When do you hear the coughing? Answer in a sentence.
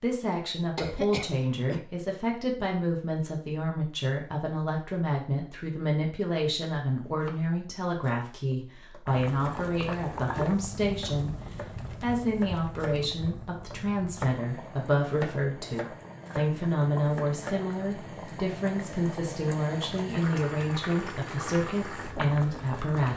The coughing can be heard from 0.8 to 1.8 s.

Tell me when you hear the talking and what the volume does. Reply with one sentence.
The talking can be heard from 0.0 to 11.3 s, at a steady volume; and from 12.0 to 23.1 s, at a steady volume.